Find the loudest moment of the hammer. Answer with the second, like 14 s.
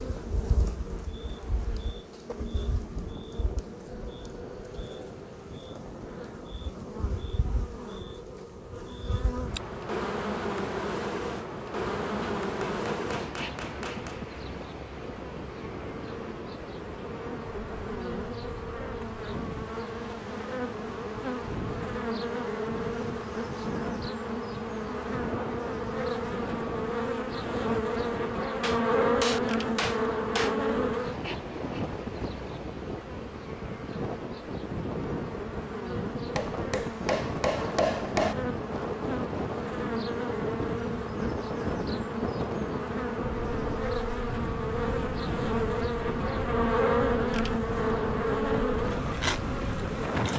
38 s.